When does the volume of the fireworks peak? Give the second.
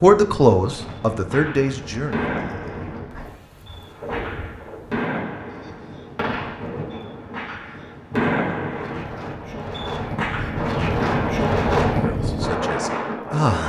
8 s.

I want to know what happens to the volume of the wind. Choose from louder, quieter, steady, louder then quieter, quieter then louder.
louder.